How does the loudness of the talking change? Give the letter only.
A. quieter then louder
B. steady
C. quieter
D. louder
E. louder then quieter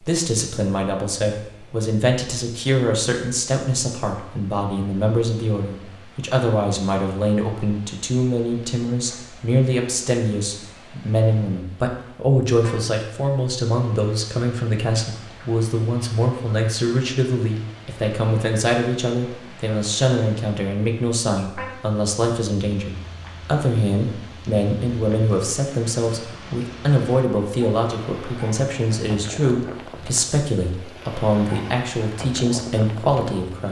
B.